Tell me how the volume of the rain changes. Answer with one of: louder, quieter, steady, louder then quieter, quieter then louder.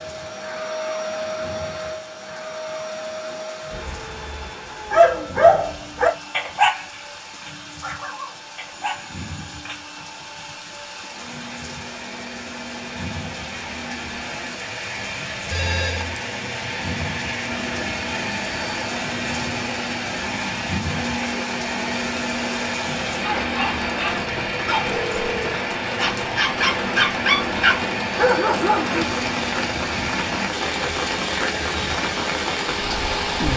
louder.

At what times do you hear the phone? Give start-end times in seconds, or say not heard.
8.7-9.7, 15.5-16.2, 24.8-25.6.